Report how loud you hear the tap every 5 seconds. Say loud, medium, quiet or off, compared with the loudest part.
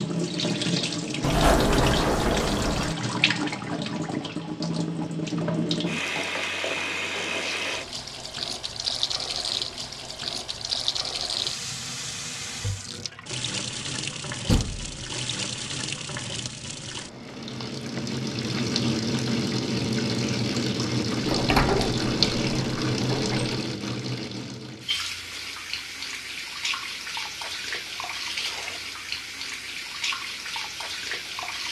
loud, loud, medium, loud, loud, medium, medium.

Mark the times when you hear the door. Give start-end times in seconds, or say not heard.
1.2-3.0, 14.4-14.9, 21.2-23.6.